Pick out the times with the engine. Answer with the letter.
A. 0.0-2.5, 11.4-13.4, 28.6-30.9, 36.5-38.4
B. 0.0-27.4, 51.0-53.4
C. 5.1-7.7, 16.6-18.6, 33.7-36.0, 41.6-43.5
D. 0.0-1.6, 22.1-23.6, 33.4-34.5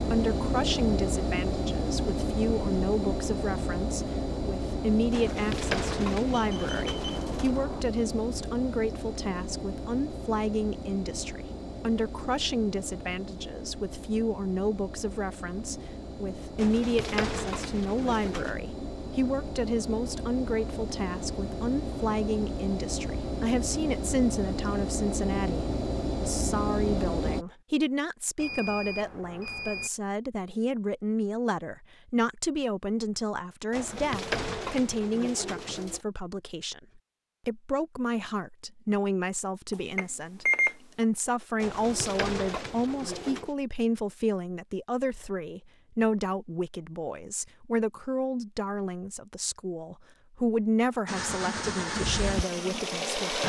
B.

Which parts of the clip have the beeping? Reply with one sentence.
You can hear the beeping from 6.3 to 7.8 s, from 28.4 to 29.9 s and from 39.7 to 40.8 s.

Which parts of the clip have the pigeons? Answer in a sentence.
You can hear the pigeons from 5.1 to 7.7 s, from 16.6 to 18.6 s, from 33.7 to 36.0 s and from 41.6 to 43.5 s.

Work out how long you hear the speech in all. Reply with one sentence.
You can hear the speech for 53 seconds altogether.